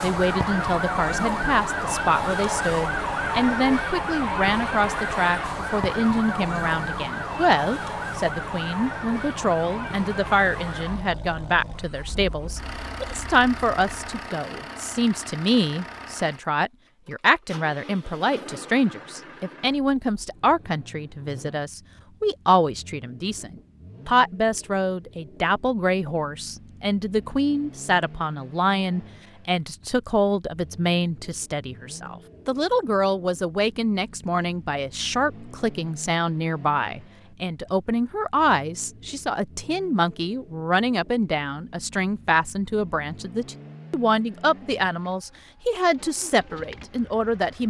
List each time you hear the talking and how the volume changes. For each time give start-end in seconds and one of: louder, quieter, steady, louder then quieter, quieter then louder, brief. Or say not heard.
0.0-47.6 steady.